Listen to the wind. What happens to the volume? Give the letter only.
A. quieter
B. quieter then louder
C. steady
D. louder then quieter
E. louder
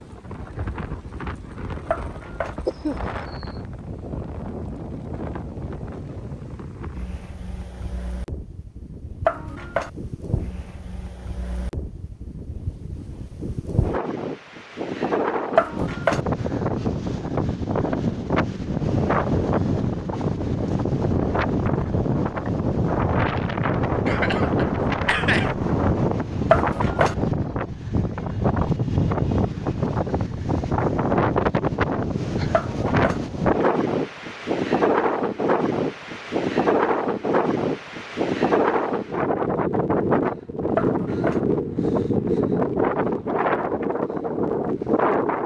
E.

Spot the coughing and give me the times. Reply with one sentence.
The coughing can be heard from 2.6 to 3.5 s and from 24.1 to 25.6 s.